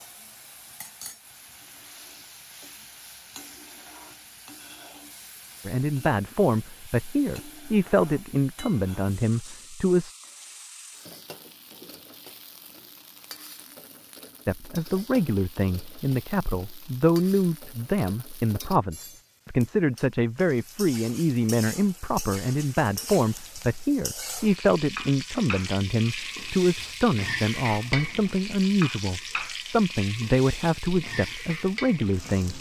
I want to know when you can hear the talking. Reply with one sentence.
You can hear the talking from 5.7 to 10.2 s and from 14.4 to 32.5 s.